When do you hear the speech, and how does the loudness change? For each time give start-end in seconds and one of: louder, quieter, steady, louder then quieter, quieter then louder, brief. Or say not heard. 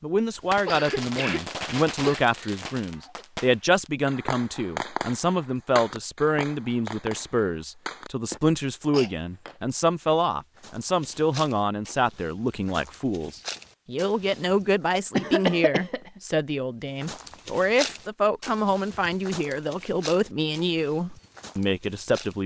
0.0-22.4 steady.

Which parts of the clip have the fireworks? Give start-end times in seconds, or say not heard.
0.4-8.4.